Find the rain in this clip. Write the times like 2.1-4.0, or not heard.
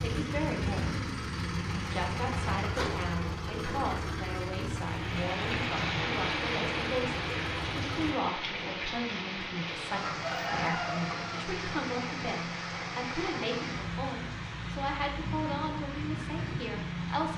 4.8-17.3.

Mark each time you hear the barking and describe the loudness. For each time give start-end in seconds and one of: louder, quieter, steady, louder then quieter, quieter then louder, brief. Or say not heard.
not heard.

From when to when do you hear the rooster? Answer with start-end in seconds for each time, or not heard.
9.8-11.4.